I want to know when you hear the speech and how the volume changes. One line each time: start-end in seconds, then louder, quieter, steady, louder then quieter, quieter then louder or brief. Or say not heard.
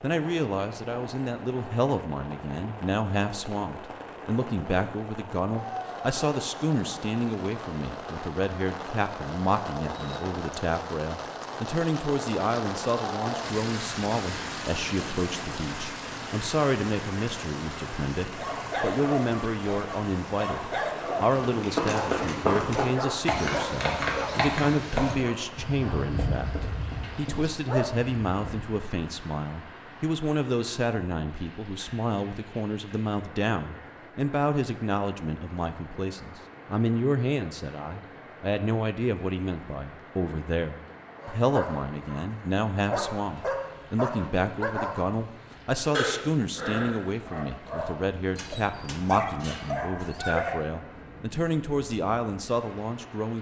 0.0-53.3 steady.